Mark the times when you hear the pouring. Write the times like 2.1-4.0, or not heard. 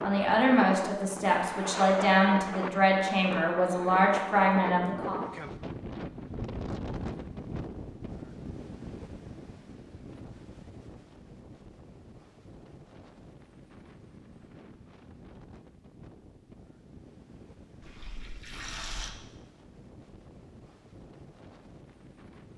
17.8-19.1.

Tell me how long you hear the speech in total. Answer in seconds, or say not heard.
5 s.